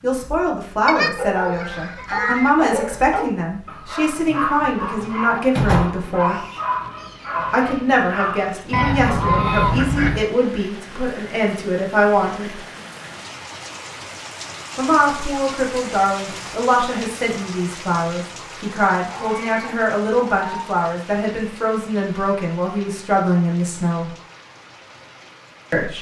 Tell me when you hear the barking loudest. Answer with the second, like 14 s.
6 s.